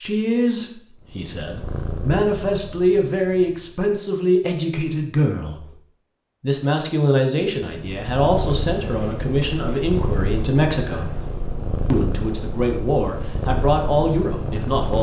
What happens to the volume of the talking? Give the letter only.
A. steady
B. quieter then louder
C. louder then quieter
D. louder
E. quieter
A.